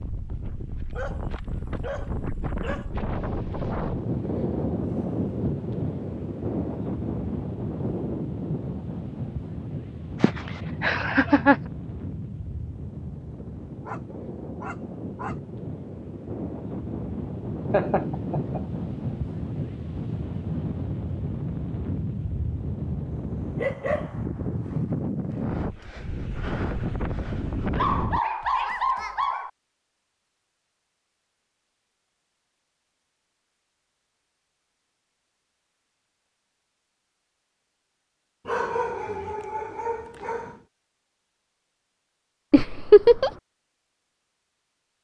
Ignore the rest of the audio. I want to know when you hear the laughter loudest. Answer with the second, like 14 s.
43 s.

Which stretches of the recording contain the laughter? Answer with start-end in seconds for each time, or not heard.
10.2-11.6, 17.7-18.6, 42.5-43.4.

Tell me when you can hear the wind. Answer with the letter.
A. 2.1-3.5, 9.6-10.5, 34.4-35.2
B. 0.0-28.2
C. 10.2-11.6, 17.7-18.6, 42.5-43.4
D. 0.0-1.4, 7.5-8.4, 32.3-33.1
B.